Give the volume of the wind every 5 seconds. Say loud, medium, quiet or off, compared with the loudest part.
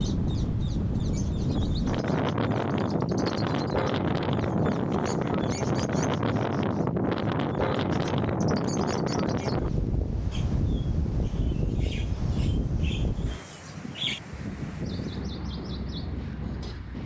loud, loud, medium, medium.